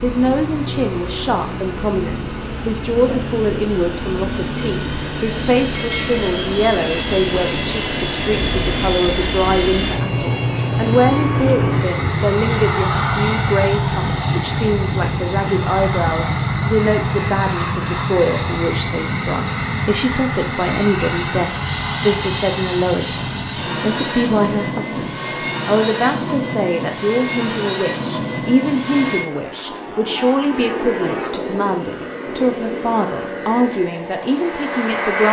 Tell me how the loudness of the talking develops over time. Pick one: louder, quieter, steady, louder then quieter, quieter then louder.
steady.